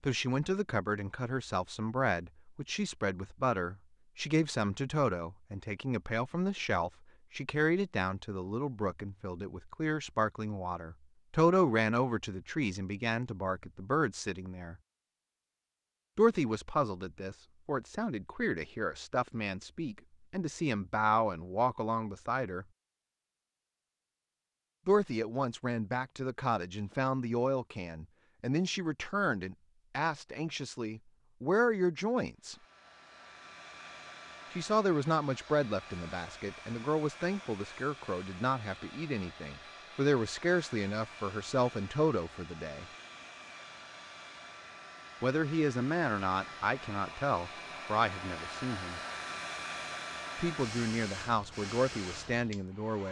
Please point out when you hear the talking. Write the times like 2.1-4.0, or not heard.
0.0-14.8, 16.1-22.6, 24.9-32.5, 34.5-42.9, 45.2-49.0, 50.4-53.0.